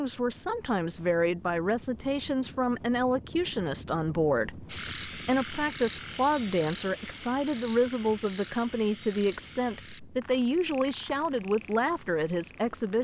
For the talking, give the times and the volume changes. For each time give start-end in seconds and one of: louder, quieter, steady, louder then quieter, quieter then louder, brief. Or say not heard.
0.0-13.0 steady.